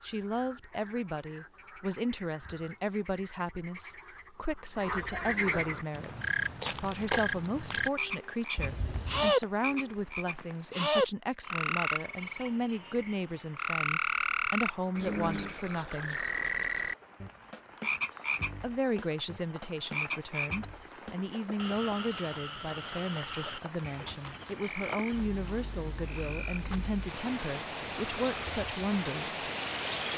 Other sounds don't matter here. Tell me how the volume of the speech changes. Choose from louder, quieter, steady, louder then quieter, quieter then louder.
steady.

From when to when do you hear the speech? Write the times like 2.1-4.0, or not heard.
0.0-16.2, 18.6-29.4.